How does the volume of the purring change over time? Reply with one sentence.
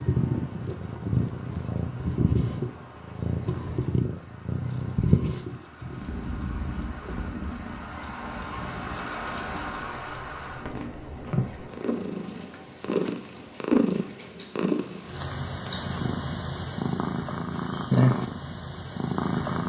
The volume of the purring goes down, then up.